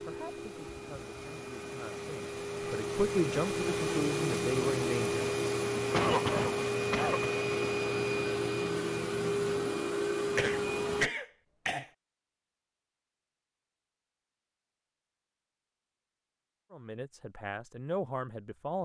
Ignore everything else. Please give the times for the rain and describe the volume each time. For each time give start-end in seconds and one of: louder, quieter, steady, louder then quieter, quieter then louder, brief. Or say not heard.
not heard.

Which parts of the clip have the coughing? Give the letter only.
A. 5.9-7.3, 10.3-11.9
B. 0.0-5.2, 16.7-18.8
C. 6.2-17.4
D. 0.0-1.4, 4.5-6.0
A.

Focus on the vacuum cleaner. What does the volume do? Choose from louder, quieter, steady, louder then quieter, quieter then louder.
louder.